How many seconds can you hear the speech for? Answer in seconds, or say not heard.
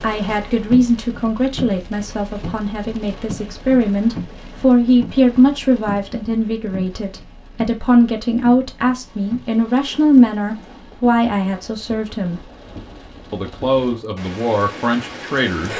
15 s.